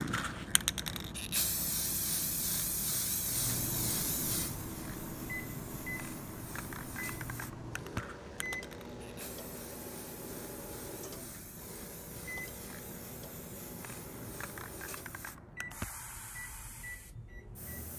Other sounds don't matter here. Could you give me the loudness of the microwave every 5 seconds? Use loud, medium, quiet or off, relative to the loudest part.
loud, loud, medium, medium.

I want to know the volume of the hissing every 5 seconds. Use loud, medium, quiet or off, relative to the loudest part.
loud, medium, medium, medium.